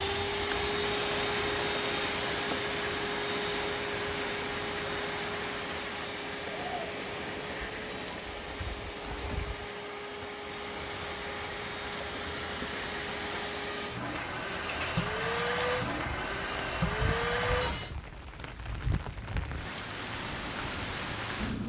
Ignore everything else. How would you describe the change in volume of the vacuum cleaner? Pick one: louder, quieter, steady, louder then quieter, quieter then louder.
quieter then louder.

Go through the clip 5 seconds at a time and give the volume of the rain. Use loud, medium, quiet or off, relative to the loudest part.
loud, medium, medium, medium, loud.